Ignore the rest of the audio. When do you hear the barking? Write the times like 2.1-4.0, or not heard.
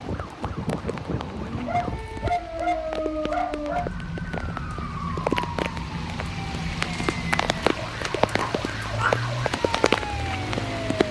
1.6-3.9, 8.3-9.2.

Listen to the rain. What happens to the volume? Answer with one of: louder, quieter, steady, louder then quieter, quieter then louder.
louder.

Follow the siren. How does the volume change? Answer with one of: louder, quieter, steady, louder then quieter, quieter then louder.
steady.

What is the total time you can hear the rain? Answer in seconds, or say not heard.
11 s.